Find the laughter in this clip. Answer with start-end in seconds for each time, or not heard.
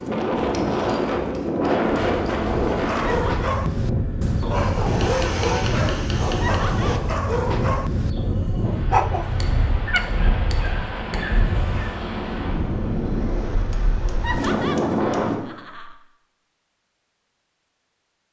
3.0-3.5, 6.4-7.0, 14.2-15.9.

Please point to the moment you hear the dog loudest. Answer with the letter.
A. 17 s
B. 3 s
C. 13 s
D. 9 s
D.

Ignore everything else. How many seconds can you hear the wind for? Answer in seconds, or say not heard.
15 s.